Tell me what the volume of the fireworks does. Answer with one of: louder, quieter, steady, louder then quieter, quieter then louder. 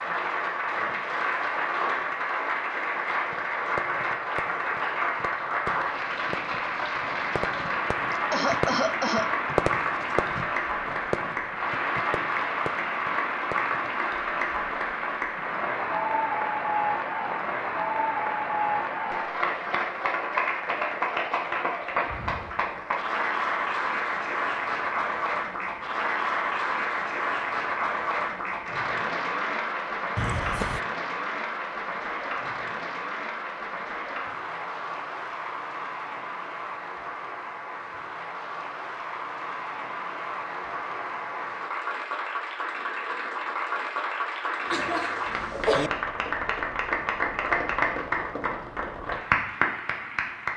louder then quieter.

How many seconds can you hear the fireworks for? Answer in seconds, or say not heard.
11 s.